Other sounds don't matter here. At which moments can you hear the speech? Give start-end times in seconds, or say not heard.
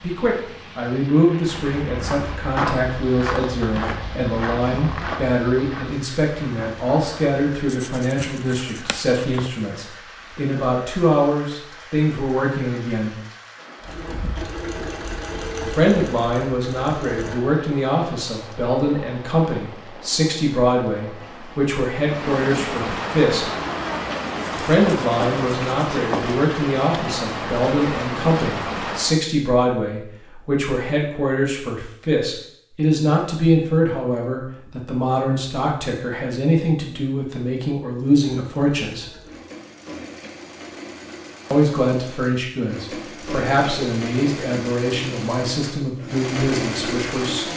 0.0-13.2, 15.6-23.4, 24.5-39.1, 41.5-47.5.